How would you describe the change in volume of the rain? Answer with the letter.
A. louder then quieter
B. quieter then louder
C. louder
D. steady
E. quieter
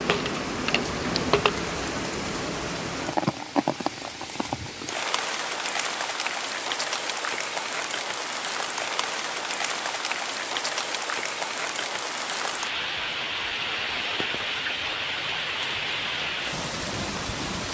D.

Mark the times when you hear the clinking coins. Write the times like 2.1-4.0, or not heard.
0.1-1.5.